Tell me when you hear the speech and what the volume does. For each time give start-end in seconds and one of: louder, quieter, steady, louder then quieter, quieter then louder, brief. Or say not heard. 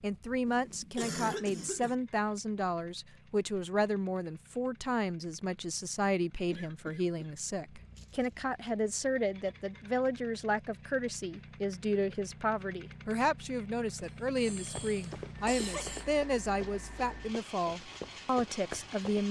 0.0-19.2 steady.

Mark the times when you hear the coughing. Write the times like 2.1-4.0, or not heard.
0.5-1.9, 6.5-8.3, 14.0-16.1.